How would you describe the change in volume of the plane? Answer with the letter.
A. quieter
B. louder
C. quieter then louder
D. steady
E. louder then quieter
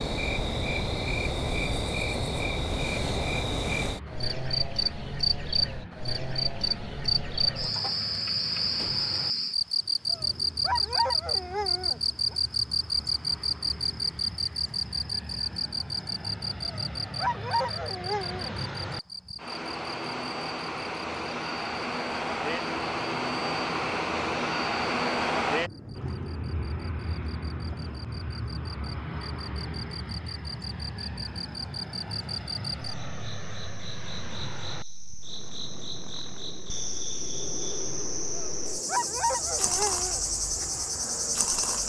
E.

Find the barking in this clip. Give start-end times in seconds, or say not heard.
10.1-12.3, 16.6-18.5, 38.4-40.2.